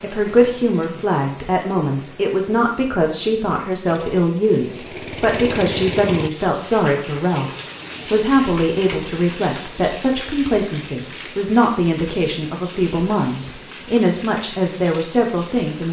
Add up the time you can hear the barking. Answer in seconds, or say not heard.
not heard.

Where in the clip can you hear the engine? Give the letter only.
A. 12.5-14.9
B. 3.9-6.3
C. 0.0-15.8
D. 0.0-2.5
B.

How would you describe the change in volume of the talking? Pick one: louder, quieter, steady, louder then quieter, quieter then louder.
steady.